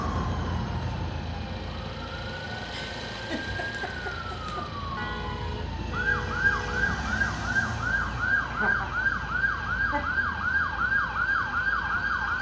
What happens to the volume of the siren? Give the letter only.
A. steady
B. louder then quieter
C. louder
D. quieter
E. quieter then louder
C.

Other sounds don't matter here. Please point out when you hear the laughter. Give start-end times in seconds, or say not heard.
2.7-4.7, 8.5-10.0.